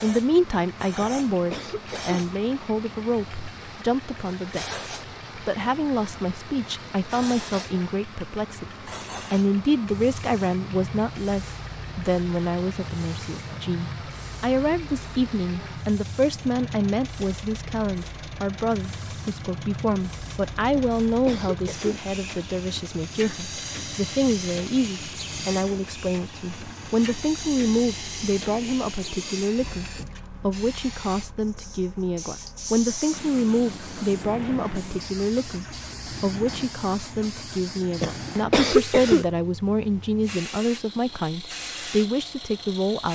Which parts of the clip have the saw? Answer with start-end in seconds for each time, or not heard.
not heard.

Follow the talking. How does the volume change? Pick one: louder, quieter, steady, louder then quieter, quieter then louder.
steady.